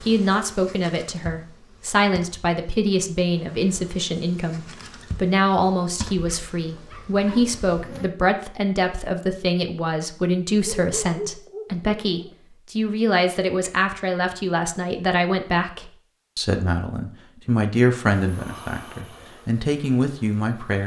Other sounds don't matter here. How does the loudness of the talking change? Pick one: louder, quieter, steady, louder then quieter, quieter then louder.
steady.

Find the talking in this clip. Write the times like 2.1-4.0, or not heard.
0.0-20.8.